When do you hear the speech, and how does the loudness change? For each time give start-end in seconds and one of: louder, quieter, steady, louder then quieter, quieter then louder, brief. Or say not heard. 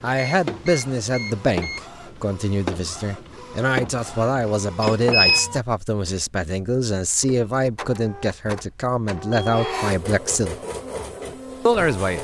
0.0-10.6 steady
11.7-12.1 brief.